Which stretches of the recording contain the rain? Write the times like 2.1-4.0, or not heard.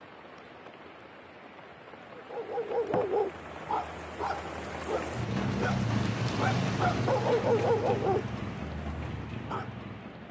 0.0-10.2.